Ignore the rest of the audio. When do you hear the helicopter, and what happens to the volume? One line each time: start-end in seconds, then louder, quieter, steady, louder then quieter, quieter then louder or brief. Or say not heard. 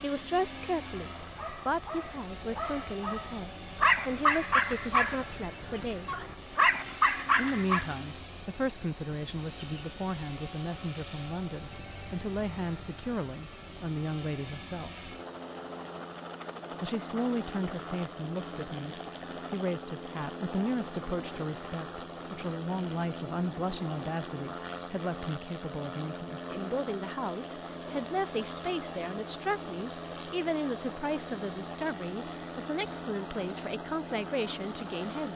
0.0-35.3 steady.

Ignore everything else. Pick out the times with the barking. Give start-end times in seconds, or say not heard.
1.0-7.8.